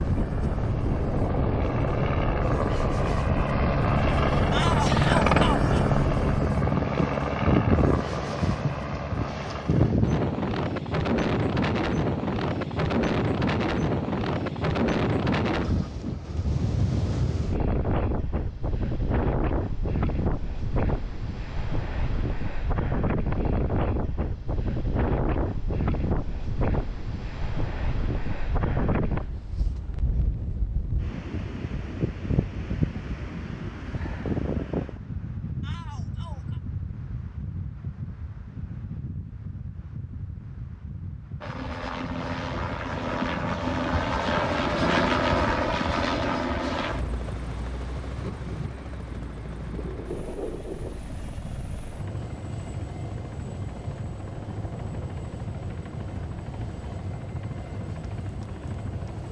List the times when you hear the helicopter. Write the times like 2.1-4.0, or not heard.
0.0-9.9, 41.4-59.2.